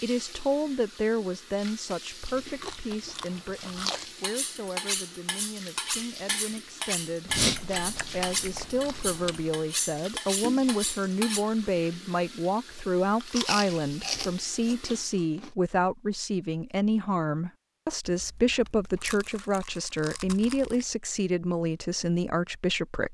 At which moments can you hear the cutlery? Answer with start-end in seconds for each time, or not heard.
4.2-11.4.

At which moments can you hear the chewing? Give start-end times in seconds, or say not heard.
2.2-4.0, 7.2-9.5, 13.2-15.5, 18.1-20.9.